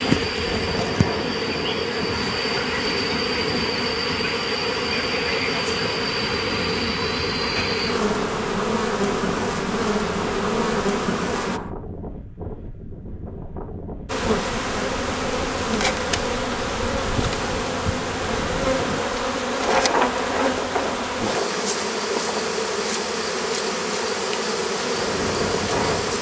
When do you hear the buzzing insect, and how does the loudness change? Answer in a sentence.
You can hear the buzzing insect from 0.0 to 11.6 s, at a steady volume; and from 14.1 to 26.1 s, at a steady volume.